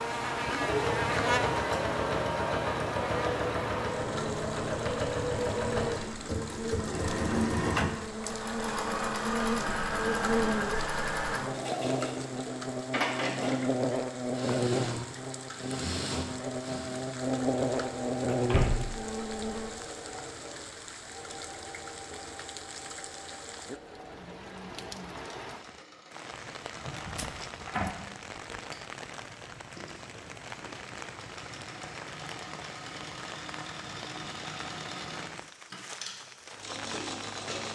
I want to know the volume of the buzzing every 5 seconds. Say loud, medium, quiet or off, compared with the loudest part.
loud, medium, loud, loud, off, off, off, off.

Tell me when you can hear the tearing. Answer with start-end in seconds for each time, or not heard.
26.9-27.4.